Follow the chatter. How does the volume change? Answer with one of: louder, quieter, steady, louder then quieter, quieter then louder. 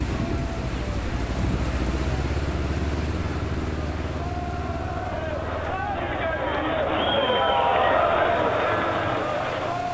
louder.